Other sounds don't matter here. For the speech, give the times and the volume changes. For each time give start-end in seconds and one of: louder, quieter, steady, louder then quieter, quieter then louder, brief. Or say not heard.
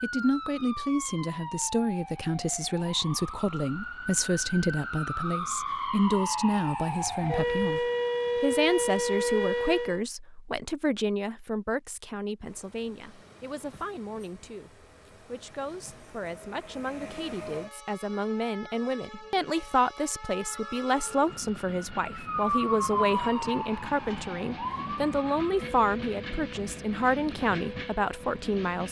0.0-28.8 quieter then louder.